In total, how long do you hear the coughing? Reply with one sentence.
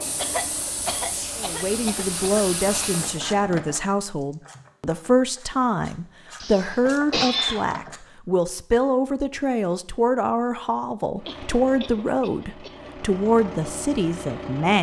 You can hear the coughing for 6 seconds altogether.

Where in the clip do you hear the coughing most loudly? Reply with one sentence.
The loudest moment of the coughing is at 7 seconds.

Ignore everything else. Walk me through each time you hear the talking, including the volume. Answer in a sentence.
You can hear the talking from 1.4 to 14.7 s, at a steady volume.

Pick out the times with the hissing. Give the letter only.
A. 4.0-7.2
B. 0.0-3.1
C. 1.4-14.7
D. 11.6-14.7
B.